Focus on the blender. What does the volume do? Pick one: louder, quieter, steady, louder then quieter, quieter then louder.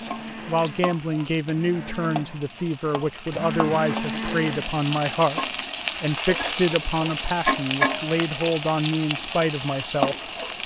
louder.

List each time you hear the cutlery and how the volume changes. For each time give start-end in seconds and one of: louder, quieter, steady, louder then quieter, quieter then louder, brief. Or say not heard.
not heard.